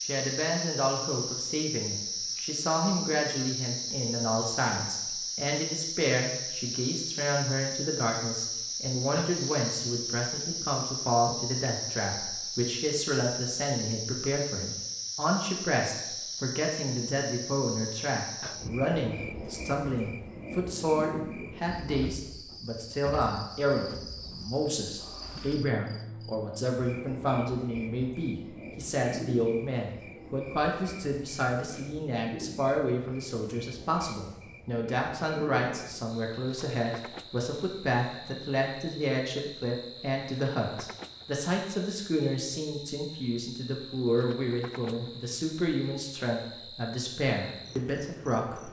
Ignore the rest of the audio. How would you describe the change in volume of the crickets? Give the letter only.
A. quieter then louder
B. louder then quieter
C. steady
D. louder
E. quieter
E.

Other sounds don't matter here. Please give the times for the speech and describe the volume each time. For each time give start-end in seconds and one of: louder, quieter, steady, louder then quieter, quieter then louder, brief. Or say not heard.
0.1-48.6 steady.